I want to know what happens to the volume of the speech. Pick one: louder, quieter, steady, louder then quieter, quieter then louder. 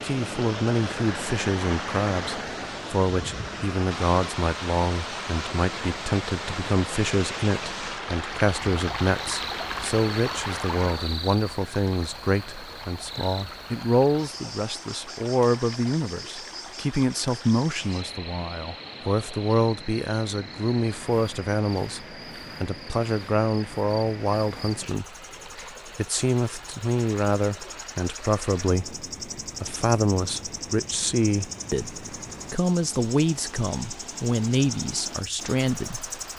steady.